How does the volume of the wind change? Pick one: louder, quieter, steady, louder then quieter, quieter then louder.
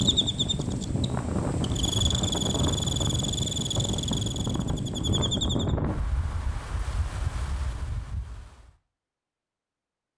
quieter.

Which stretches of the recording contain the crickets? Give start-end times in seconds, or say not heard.
0.0-5.8.